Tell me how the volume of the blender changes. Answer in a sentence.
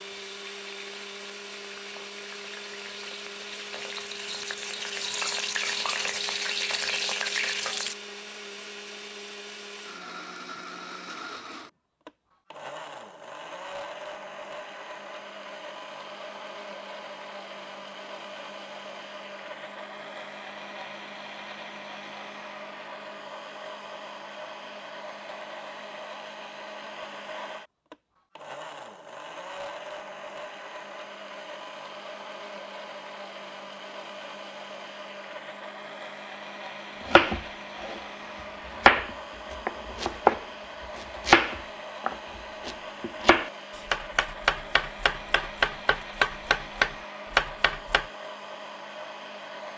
The loudness of the blender stays about the same.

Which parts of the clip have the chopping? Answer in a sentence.
You can hear the chopping from 37.0 to 38.0 s and from 38.8 to 48.0 s.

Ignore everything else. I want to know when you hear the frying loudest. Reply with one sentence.
The volume of the frying peaks at 7 seconds.